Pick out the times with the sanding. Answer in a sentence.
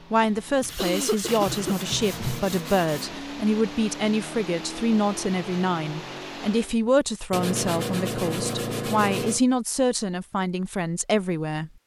You can hear the sanding from 0.6 to 3.1 s and from 7.3 to 9.4 s.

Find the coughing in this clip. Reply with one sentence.
You can hear the coughing from 0.2 to 1.8 s.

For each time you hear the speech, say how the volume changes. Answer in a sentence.
The speech can be heard from 0.1 to 11.7 s, at a steady volume.